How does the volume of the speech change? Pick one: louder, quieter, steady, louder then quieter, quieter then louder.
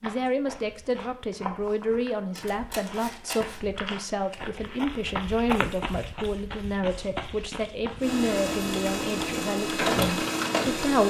steady.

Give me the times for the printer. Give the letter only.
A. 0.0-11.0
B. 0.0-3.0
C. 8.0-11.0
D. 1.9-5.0
C.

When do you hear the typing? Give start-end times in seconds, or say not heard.
not heard.